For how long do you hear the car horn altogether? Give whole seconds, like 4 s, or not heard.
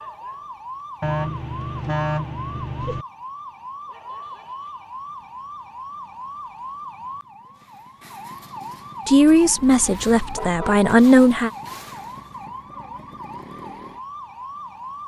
3 s.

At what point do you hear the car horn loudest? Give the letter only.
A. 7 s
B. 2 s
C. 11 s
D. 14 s
B.